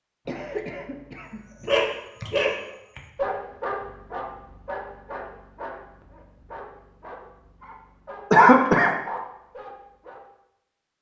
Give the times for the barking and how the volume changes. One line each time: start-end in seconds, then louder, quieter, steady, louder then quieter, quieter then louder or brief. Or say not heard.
1.6-10.2 quieter.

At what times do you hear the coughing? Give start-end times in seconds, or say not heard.
0.2-1.8, 8.3-9.2.